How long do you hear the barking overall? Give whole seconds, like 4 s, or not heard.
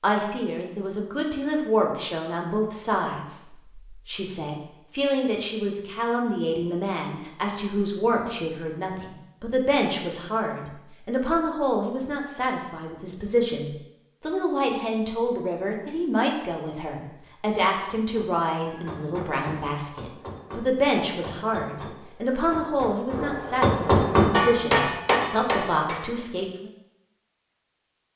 not heard.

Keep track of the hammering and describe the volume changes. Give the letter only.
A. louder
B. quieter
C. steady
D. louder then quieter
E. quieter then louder
A.